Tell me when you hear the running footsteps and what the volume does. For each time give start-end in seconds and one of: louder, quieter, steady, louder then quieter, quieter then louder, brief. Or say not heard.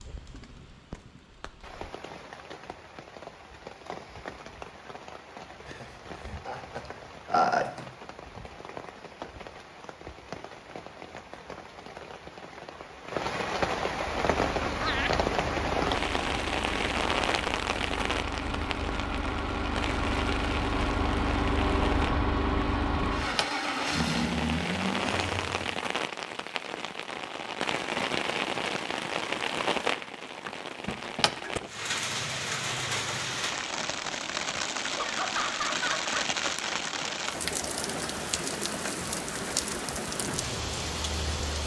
not heard.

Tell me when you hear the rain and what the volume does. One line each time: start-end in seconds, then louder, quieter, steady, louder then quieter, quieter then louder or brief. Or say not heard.
0.0-41.6 louder.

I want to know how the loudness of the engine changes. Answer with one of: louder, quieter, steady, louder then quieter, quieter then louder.
louder.